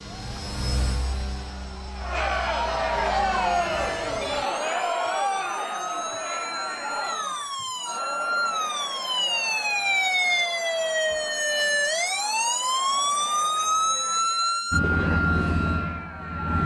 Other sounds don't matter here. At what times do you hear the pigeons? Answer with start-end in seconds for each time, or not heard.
not heard.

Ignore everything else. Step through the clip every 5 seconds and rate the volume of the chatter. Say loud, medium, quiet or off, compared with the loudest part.
loud, medium, quiet, quiet.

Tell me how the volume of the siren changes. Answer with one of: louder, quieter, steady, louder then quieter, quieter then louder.
louder.